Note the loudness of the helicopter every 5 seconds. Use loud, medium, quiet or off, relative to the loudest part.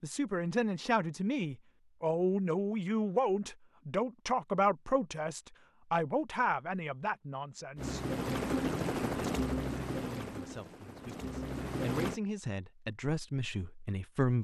off, loud, medium.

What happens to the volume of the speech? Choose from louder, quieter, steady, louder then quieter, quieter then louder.
quieter then louder.